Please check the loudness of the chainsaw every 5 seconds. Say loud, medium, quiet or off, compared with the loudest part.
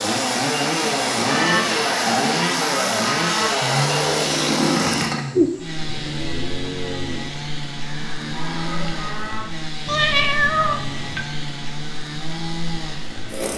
loud, medium, medium.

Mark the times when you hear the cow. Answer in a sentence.
The cow can be heard from 1.3 to 9.7 s.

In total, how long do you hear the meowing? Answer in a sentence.
The meowing can be heard for 3 seconds in total.